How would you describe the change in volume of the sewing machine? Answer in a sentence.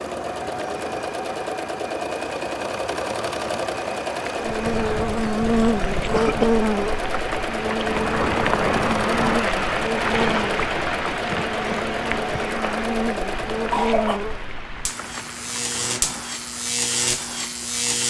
The loudness of the sewing machine stays about the same.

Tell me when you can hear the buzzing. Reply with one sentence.
The buzzing can be heard from 4.4 to 18.0 s.